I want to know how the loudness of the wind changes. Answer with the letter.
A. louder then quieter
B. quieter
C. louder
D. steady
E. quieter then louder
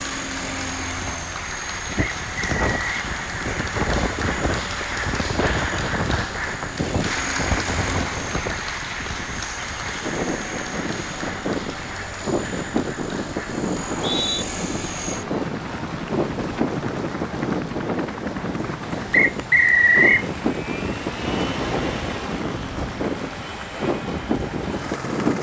D.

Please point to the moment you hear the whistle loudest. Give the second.
20 s.